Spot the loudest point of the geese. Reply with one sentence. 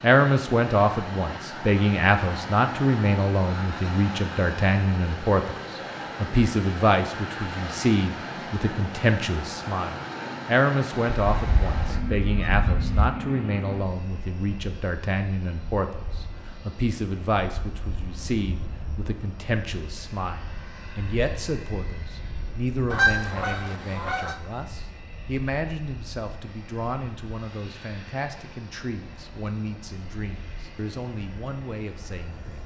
The loudest moment of the geese is at 23 seconds.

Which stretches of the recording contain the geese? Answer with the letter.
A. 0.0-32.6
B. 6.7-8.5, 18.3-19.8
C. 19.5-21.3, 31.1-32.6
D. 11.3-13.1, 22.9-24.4
D.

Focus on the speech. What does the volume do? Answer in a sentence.
The volume of the speech goes down.